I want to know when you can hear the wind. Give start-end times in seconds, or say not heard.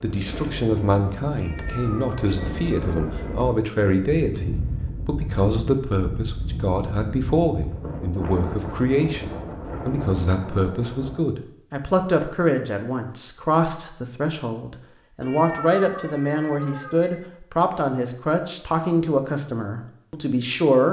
0.0-11.3.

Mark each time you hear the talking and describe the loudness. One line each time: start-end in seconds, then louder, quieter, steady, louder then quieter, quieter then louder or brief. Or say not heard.
0.0-20.8 steady.